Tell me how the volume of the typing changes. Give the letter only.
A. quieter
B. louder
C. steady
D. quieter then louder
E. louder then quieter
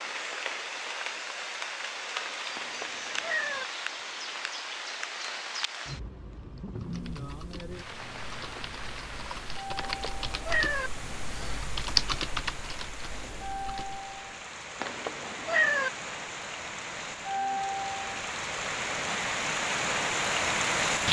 E.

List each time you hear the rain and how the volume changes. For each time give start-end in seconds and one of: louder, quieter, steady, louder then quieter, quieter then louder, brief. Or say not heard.
0.0-21.0 quieter then louder.